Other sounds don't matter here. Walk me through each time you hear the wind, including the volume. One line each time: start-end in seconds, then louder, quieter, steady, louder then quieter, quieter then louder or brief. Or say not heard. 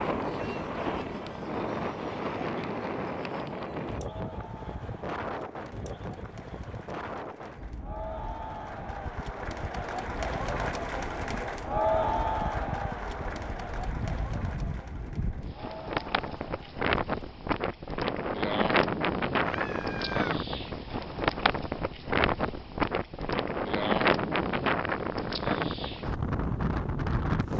0.0-27.5 quieter then louder.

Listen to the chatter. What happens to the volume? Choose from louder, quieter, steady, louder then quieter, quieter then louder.
louder then quieter.